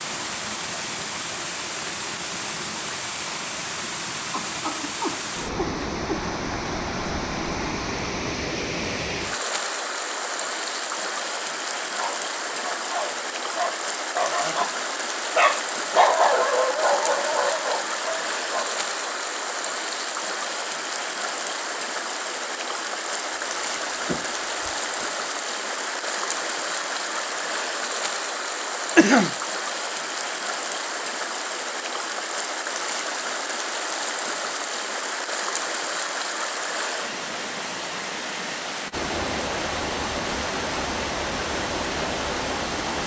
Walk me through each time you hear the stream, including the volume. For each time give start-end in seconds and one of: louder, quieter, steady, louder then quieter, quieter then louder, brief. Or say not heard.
0.0-43.0 steady.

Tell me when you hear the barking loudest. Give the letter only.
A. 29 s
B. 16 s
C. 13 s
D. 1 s
B.